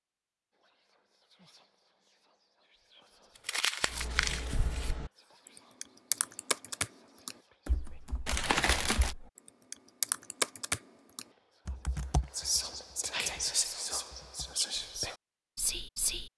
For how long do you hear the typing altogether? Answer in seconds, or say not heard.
11 s.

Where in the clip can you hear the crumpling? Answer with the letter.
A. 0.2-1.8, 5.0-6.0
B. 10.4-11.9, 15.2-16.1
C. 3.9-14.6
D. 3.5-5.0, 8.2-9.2
D.